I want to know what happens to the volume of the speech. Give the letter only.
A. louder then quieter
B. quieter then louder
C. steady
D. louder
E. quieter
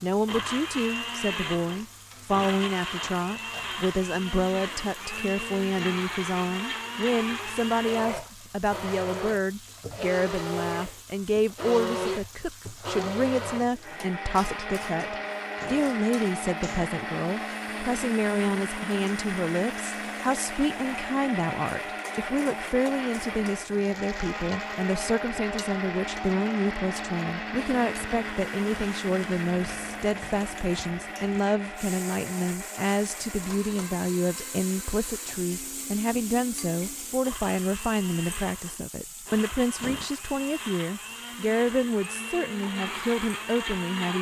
C.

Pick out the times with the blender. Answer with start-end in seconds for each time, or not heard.
0.1-44.1.